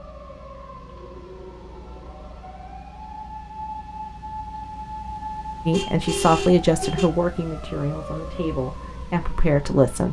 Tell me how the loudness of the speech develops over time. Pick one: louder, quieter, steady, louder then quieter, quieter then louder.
quieter then louder.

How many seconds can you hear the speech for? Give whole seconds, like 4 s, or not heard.
4 s.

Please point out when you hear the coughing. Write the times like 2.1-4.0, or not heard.
not heard.